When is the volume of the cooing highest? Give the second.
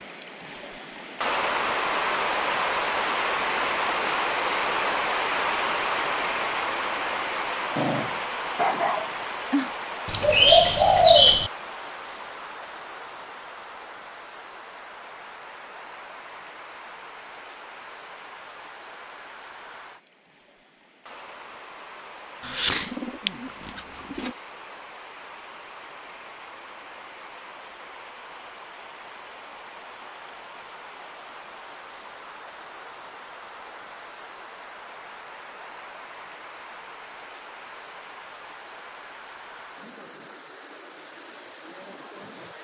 11 s.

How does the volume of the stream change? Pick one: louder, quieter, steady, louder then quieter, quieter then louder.
quieter.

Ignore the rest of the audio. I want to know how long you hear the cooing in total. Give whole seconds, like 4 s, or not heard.
3 s.